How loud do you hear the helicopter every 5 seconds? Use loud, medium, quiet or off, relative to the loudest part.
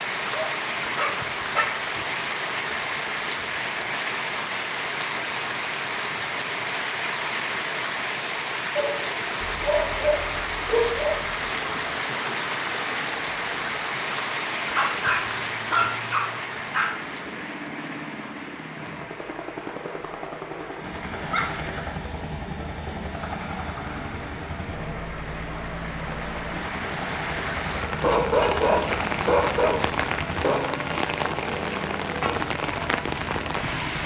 off, off, medium, medium, loud, loud, loud.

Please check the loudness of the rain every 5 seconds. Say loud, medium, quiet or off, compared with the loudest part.
loud, loud, loud, medium, quiet, loud, loud.